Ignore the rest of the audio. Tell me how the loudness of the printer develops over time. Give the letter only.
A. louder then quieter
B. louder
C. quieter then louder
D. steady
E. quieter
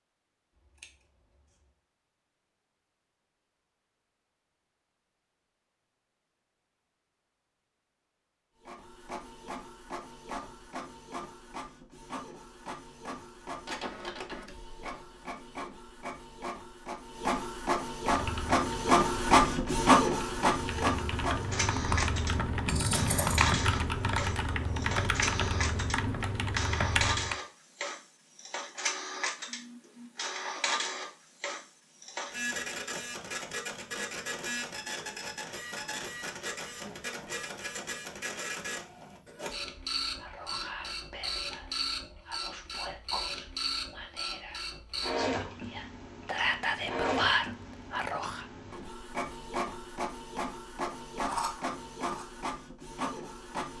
A.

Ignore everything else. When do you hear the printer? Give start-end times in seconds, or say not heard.
8.6-53.7.